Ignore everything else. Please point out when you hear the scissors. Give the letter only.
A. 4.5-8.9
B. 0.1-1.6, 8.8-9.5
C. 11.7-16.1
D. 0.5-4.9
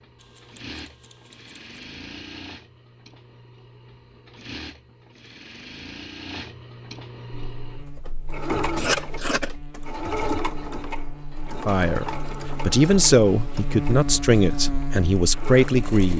B.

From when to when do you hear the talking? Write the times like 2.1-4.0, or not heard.
11.7-16.1.